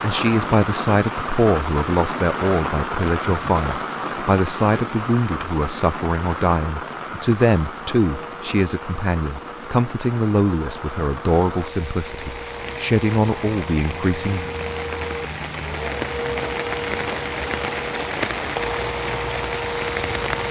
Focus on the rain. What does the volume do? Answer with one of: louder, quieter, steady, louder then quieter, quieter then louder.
quieter then louder.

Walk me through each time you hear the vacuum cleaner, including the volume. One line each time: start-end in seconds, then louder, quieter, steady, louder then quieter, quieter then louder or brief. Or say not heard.
8.0-20.4 louder.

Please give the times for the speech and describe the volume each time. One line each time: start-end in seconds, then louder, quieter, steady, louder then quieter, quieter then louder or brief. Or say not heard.
0.0-14.5 steady.